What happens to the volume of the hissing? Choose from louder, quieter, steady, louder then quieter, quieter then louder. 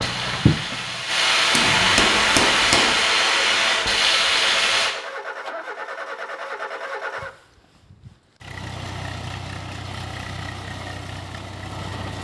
louder.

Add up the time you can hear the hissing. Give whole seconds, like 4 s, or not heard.
5 s.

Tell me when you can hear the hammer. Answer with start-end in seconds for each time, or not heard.
1.5-3.0.